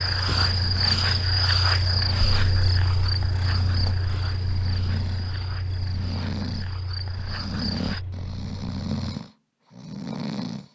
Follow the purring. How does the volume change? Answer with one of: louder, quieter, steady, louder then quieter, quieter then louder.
quieter.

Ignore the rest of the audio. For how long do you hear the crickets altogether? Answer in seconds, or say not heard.
8 s.